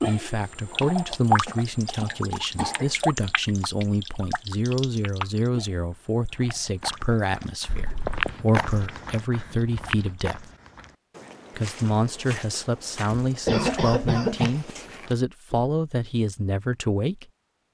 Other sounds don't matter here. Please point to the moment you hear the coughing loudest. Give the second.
14 s.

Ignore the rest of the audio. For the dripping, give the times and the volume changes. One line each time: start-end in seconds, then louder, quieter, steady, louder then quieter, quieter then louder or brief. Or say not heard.
0.0-10.3 quieter.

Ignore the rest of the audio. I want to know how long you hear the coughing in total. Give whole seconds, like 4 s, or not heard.
4 s.